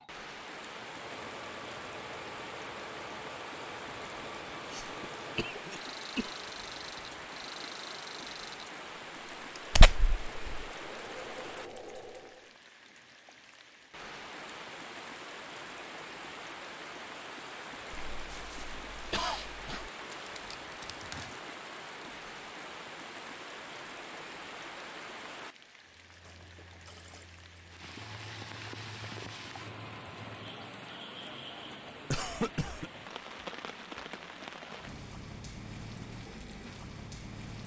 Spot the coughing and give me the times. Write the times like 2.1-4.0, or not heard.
4.7-6.3, 17.9-19.9, 32.1-32.9.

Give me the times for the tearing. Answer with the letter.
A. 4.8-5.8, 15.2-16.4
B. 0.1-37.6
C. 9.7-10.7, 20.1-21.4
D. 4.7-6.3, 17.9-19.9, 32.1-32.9
C.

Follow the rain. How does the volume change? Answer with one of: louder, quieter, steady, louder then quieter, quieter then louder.
steady.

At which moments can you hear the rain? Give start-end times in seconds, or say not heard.
0.1-37.6.